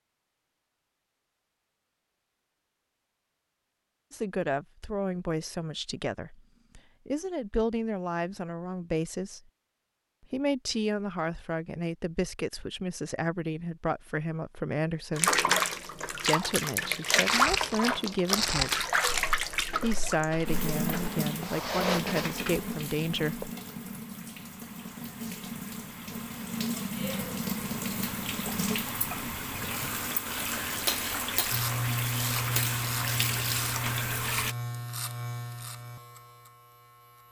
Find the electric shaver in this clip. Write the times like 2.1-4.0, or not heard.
31.5-37.2.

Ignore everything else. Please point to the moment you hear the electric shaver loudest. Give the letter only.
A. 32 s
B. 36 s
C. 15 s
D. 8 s
A.